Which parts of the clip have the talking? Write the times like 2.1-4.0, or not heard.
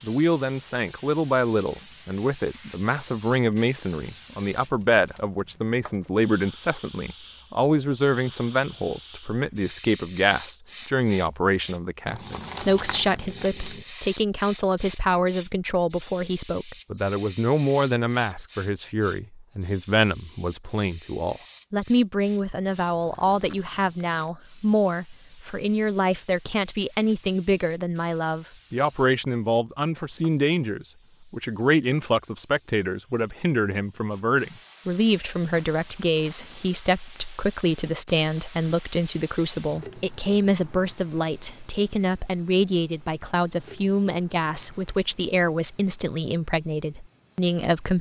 0.0-47.9.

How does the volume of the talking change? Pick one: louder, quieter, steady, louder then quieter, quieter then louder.
steady.